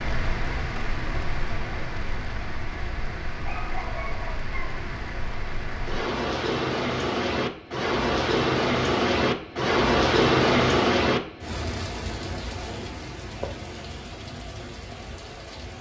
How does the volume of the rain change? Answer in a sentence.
The volume of the rain goes up, then down.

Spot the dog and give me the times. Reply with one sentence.
You can hear the dog from 3.4 to 4.8 s.